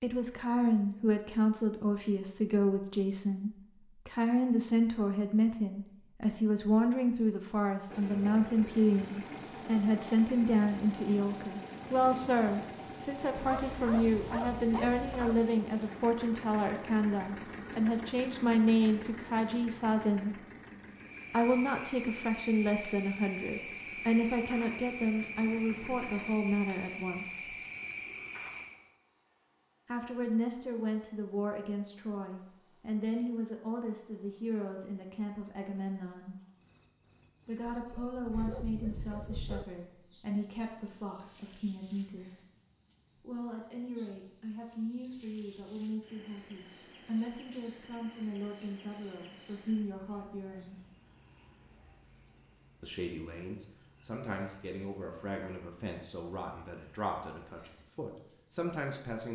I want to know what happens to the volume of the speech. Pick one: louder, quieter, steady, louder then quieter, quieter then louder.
quieter.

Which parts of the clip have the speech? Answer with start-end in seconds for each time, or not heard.
0.0-20.4, 21.3-27.5, 29.9-36.4, 37.5-42.4, 43.2-50.8, 52.8-59.3.